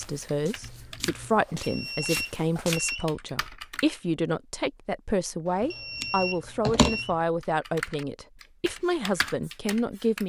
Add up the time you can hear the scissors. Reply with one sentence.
The scissors can be heard for 2 seconds in total.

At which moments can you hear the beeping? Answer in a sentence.
The beeping can be heard from 1.4 to 3.0 s and from 5.5 to 7.2 s.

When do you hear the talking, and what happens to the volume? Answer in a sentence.
You can hear the talking from 0.0 to 10.2 s, at a steady volume.